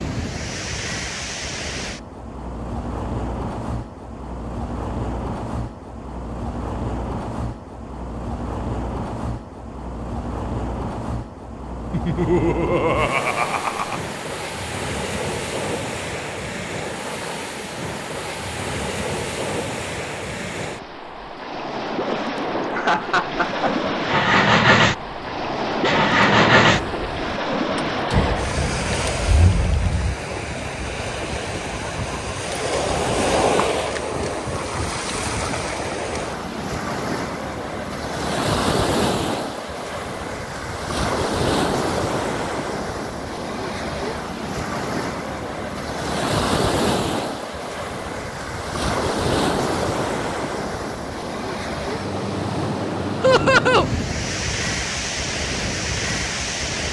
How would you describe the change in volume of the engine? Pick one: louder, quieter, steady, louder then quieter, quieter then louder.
quieter.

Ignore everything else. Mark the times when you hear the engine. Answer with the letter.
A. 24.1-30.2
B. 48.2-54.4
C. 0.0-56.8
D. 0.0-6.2
A.